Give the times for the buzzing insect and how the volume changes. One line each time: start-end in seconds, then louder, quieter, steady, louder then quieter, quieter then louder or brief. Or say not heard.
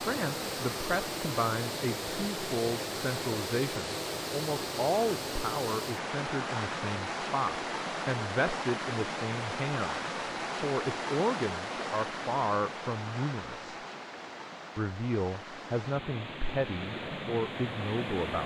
not heard.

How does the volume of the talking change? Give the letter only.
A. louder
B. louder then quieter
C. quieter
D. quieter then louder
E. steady
E.